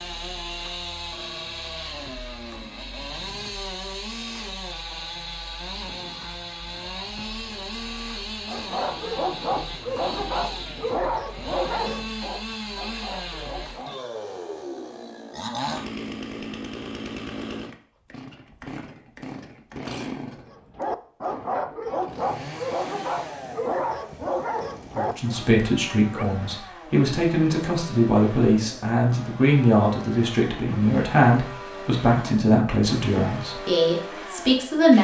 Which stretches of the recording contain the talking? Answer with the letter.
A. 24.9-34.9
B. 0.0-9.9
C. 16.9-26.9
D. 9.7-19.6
A.